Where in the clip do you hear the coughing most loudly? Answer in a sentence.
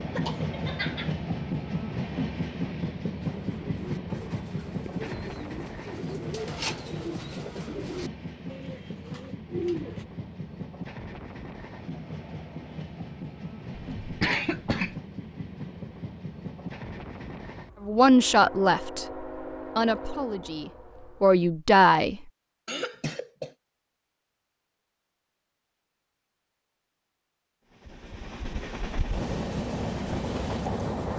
The volume of the coughing peaks at 14 seconds.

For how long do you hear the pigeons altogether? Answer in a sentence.
You can hear the pigeons for 7 seconds altogether.